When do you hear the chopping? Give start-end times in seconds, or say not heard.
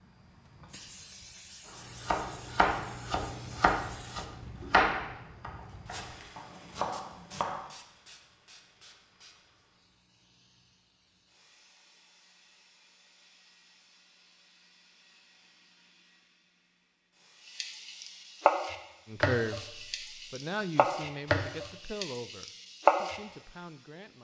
1.7-7.7, 17.4-23.2.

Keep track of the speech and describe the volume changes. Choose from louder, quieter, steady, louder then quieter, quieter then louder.
louder then quieter.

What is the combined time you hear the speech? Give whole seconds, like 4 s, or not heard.
5 s.